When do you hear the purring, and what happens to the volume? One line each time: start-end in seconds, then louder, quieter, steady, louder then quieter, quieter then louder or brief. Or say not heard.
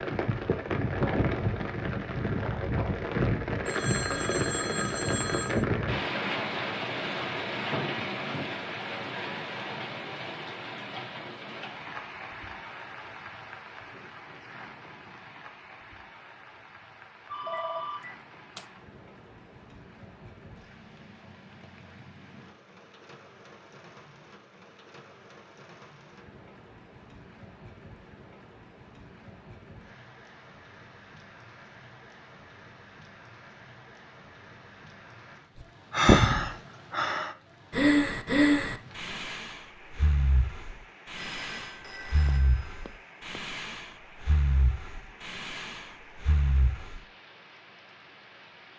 not heard.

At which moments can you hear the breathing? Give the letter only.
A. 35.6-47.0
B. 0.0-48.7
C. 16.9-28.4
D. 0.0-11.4
A.